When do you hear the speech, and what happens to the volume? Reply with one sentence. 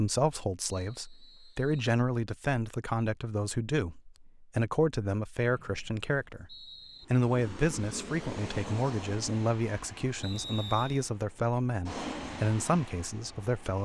You can hear the speech from 0.0 to 13.8 s, at a steady volume.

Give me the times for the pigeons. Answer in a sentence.
You can't hear the pigeons here.